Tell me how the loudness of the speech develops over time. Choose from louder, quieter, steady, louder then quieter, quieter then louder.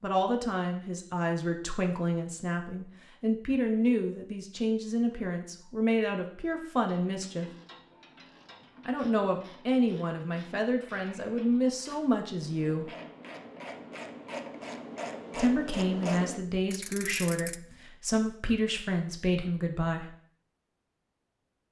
steady.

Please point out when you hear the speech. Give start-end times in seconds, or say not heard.
0.0-7.5, 8.8-12.9, 15.3-20.1.